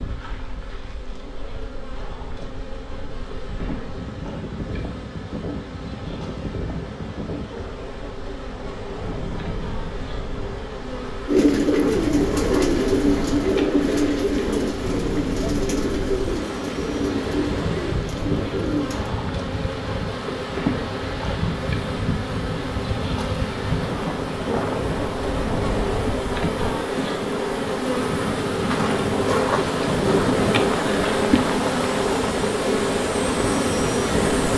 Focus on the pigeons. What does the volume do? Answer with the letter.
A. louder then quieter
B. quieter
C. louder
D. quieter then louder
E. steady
B.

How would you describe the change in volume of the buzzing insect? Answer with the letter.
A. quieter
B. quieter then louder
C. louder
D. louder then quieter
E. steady
C.